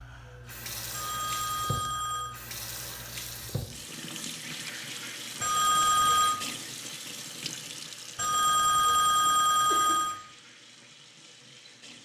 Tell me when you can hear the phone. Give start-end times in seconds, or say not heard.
0.9-2.4, 5.4-6.4, 8.2-10.2.